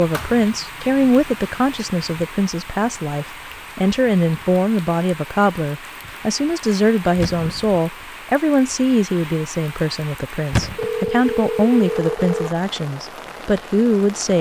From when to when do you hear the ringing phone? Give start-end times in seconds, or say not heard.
10.8-12.5.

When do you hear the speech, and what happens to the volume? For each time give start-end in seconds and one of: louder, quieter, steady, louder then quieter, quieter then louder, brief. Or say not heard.
0.0-14.3 steady.